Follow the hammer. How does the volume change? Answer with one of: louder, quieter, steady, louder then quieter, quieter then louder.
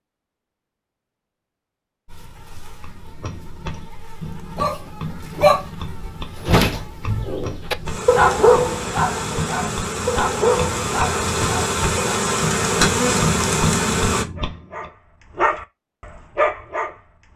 louder.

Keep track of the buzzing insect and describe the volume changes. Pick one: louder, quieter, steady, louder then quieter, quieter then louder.
louder.